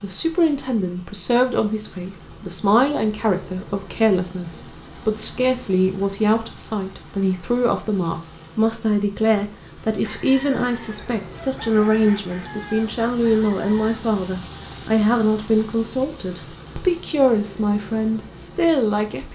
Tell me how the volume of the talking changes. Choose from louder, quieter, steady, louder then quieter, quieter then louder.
steady.